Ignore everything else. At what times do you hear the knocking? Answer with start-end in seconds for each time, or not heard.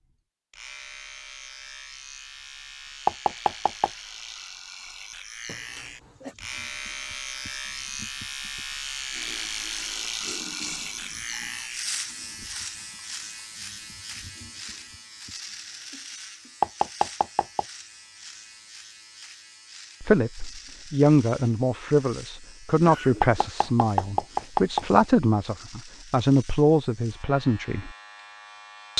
3.0-3.9, 16.6-17.6, 23.2-25.1.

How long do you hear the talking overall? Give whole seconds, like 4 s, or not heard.
8 s.